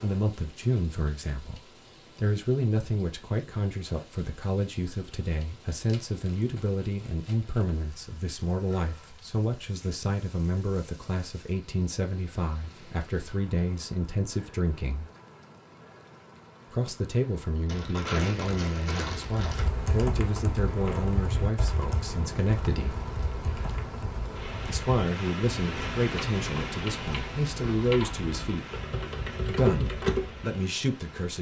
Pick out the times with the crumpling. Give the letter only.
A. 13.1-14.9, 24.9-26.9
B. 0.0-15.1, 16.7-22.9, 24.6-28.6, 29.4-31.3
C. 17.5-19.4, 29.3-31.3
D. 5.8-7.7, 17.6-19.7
D.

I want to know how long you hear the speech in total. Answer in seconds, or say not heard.
27 s.